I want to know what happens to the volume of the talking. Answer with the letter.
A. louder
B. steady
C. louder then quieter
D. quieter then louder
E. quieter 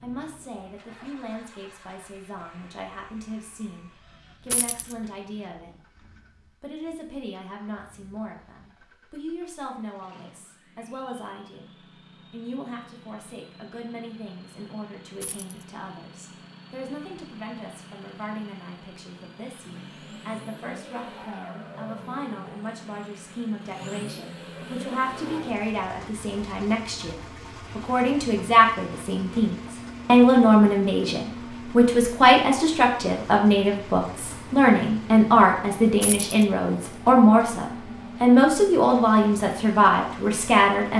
A.